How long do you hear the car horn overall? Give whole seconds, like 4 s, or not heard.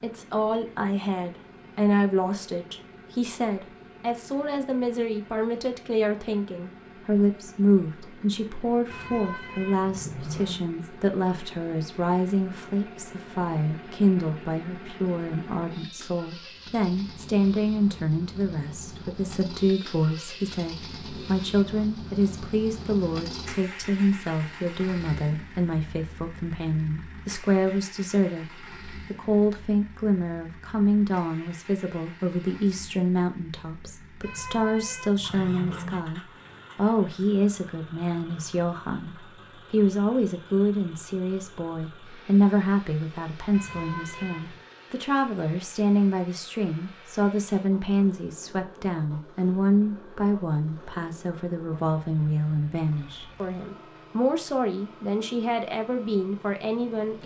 5 s.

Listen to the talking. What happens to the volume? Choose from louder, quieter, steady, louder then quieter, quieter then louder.
steady.